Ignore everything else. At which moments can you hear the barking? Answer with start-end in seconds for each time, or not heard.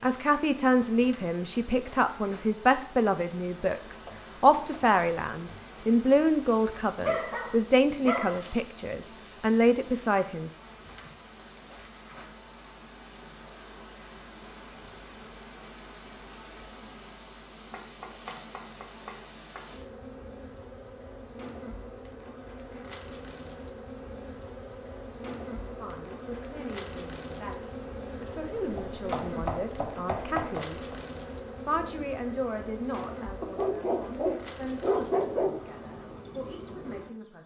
7.0-8.4, 33.4-35.6.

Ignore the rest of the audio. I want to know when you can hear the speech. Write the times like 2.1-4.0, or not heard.
0.0-10.5, 25.8-30.9, 31.6-37.4.